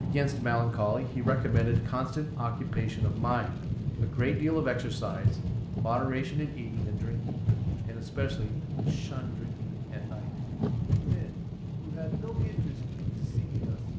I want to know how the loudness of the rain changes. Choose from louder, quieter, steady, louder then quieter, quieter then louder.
steady.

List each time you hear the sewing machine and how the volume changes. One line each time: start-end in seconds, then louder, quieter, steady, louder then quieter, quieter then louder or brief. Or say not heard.
not heard.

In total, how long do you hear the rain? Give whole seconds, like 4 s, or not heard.
14 s.